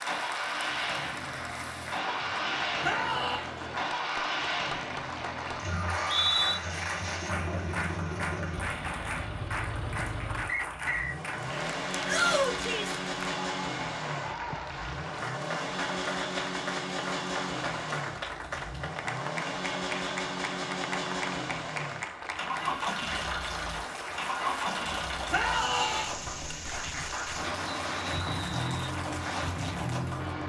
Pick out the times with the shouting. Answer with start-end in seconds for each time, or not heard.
2.8-3.5, 12.1-13.0, 25.3-26.1.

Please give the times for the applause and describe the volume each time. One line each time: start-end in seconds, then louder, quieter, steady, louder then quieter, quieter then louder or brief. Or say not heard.
0.0-30.4 steady.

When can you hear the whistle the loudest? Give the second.
6 s.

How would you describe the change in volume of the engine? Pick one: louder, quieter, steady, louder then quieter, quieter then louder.
steady.